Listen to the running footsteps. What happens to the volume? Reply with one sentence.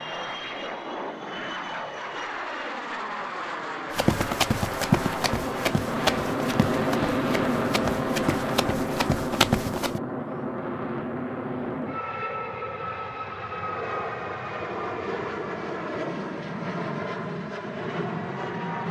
The volume of the running footsteps goes down, then up.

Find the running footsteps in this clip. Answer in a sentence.
You can hear the running footsteps from 3.9 to 10.0 s.